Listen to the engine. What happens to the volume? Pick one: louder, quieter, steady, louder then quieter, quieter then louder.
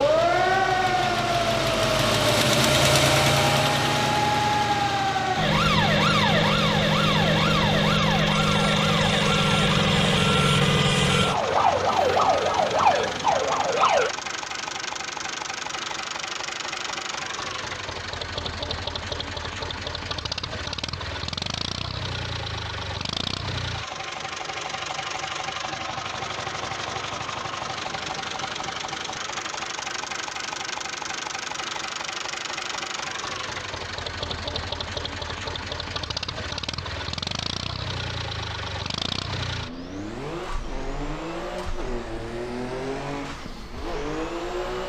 quieter.